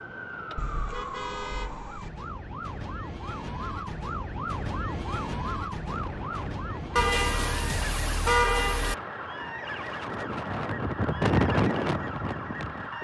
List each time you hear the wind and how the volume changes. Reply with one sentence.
You can hear the wind from 5.8 to 12.9 s, getting louder.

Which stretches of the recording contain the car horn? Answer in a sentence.
The car horn can be heard from 0.6 to 2.1 s and from 7.0 to 8.9 s.